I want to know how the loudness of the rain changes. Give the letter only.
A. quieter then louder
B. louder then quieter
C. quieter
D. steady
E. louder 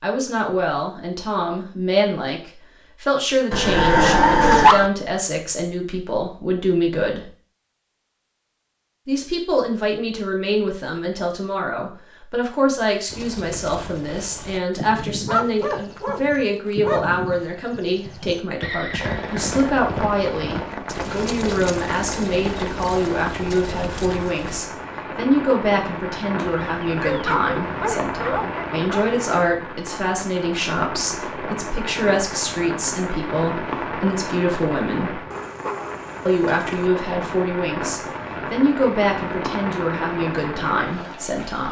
D.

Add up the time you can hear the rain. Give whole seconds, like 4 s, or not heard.
23 s.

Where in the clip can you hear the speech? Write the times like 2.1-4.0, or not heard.
0.0-7.3, 9.1-35.2, 36.2-41.6.